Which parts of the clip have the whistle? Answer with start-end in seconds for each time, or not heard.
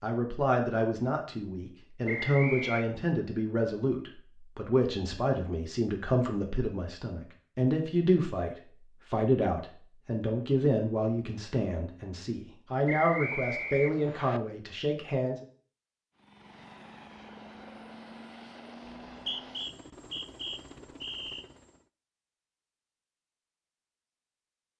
2.0-2.9, 12.8-14.4, 18.9-21.4.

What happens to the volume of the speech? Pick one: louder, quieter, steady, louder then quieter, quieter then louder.
steady.